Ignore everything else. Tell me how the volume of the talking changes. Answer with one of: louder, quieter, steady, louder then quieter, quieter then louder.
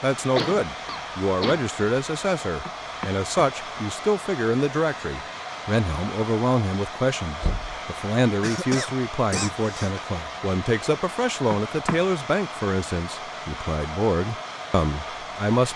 steady.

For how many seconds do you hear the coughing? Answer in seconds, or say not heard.
3 s.